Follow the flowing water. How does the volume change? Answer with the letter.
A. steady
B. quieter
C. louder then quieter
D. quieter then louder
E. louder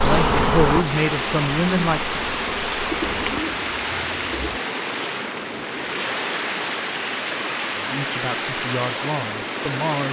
A.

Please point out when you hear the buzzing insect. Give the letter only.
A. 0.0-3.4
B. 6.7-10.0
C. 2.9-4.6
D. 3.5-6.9
A.